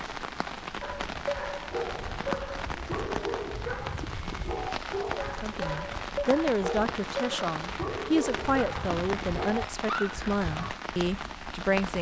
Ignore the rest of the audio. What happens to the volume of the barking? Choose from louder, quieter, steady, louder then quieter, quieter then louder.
steady.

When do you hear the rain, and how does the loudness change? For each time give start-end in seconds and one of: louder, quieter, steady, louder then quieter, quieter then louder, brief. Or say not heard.
0.0-11.9 steady.